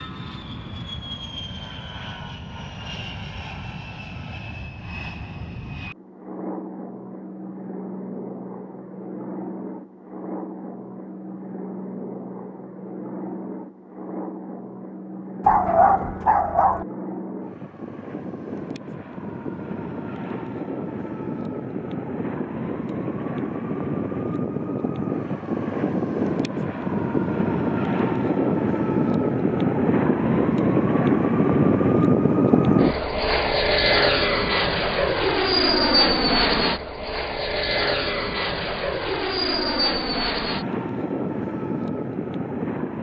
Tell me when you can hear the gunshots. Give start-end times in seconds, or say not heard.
not heard.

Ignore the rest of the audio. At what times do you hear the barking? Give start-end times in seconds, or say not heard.
15.4-16.9.